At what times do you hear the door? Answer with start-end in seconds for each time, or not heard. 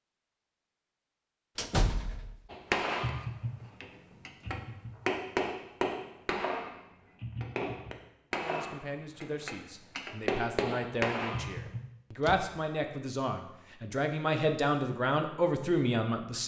1.6-2.4, 11.7-12.6.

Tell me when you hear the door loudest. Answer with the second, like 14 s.
2 s.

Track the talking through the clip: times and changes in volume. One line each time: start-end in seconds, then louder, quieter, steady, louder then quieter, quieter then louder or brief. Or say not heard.
8.3-16.4 louder.